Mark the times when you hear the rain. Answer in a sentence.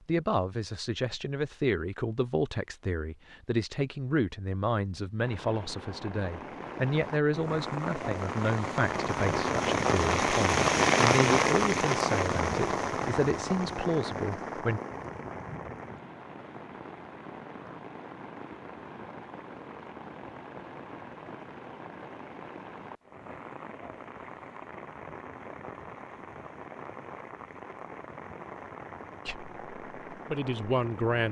The rain can be heard from 5.2 to 31.2 s.